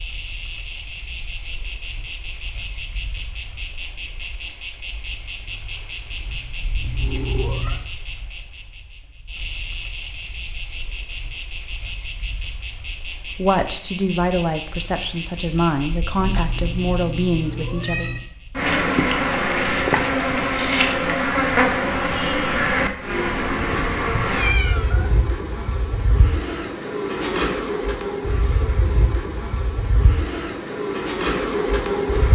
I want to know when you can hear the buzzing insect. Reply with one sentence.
The buzzing insect can be heard from 0.0 to 32.3 s.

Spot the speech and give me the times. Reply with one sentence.
You can hear the speech from 13.3 to 18.1 s.